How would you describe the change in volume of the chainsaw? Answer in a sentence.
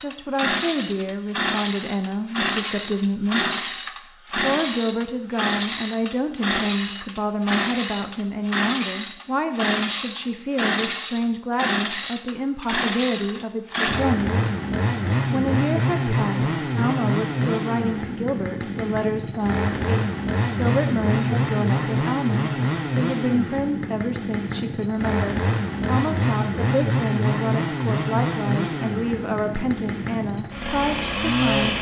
The volume of the chainsaw stays about the same.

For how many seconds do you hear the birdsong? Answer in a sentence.
You can't hear the birdsong here.